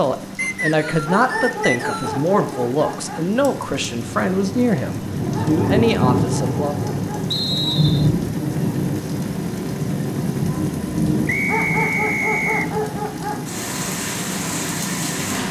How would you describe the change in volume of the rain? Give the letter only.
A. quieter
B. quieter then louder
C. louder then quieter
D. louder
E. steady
C.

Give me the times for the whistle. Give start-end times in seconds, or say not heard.
0.3-2.2, 7.3-8.1, 11.2-12.7.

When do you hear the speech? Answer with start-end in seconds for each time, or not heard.
0.0-7.0.